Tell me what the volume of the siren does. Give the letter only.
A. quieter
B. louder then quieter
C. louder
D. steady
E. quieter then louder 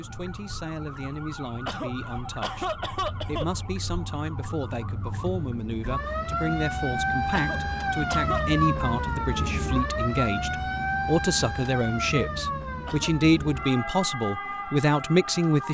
B.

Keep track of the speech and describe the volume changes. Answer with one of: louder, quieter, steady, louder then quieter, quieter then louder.
louder.